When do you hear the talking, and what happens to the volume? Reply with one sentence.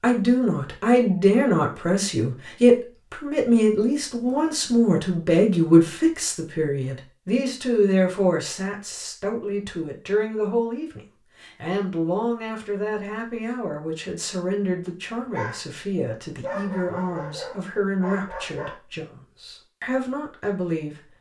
The talking can be heard from 0.0 to 21.1 s, getting quieter.